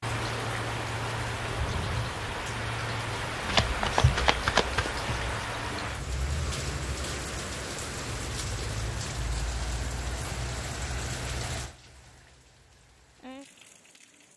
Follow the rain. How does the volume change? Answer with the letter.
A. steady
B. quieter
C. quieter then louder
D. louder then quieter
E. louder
B.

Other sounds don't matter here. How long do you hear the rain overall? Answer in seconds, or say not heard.
14 s.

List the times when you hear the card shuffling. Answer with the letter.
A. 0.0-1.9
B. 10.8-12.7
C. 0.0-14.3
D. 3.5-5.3
D.